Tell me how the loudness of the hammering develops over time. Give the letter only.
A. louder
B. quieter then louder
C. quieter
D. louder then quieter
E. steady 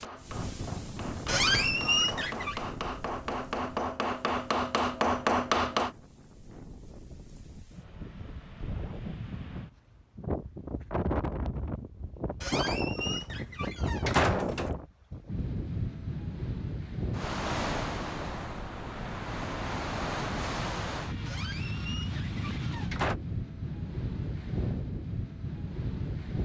A.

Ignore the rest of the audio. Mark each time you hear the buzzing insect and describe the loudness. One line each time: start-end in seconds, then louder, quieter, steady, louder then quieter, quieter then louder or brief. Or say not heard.
not heard.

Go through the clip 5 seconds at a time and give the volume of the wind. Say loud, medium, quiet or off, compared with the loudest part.
medium, medium, loud, loud, loud, loud.